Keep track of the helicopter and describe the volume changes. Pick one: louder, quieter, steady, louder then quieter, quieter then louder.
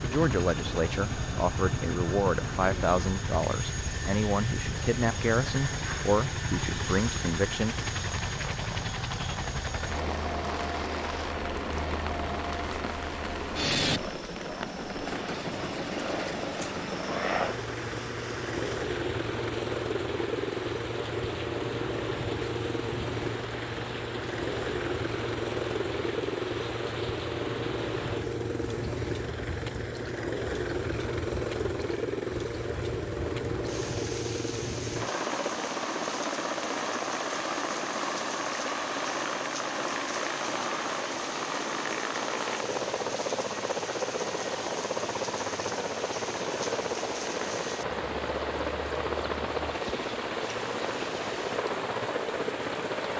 steady.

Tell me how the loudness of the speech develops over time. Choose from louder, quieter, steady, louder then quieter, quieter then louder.
steady.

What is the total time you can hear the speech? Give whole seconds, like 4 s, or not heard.
8 s.